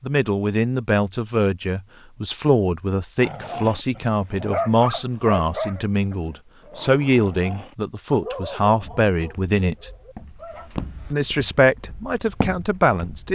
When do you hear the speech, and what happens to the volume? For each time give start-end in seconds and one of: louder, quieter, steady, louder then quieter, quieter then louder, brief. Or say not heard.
0.0-9.9 steady
11.1-13.3 brief.